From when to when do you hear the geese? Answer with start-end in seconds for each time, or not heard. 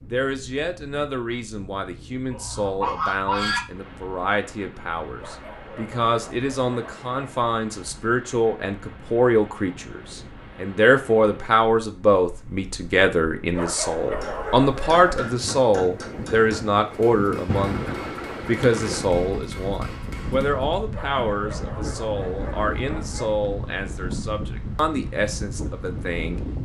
2.3-3.6.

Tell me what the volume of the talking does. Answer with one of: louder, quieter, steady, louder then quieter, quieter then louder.
louder then quieter.